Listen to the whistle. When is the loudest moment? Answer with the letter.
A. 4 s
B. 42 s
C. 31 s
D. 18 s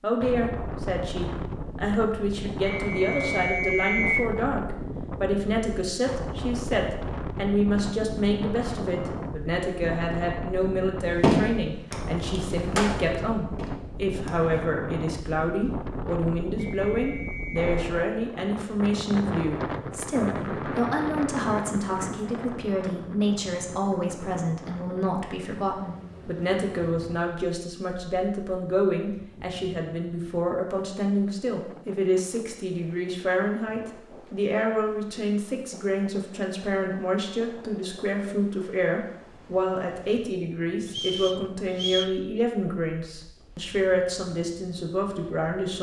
A.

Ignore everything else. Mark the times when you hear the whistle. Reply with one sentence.
The whistle can be heard from 2.6 to 4.3 s, from 16.8 to 17.7 s and from 40.9 to 42.1 s.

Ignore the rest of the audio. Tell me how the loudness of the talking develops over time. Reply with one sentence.
The loudness of the talking stays about the same.